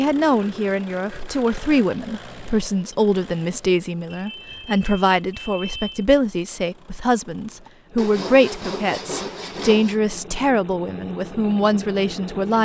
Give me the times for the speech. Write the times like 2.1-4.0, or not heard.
0.0-12.6.